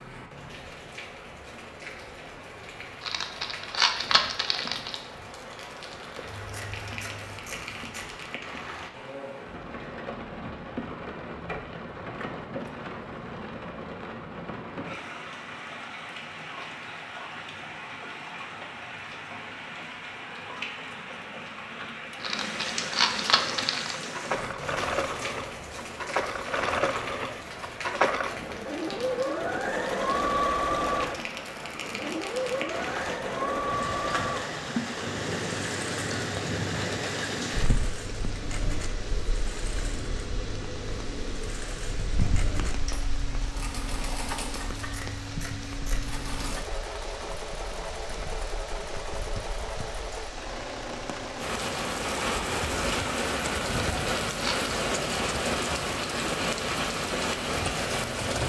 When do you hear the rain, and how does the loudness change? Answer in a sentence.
The rain can be heard from 0.0 to 58.4 s, getting louder.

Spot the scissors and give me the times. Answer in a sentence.
You can hear the scissors from 6.2 to 8.2 s and from 44.6 to 46.2 s.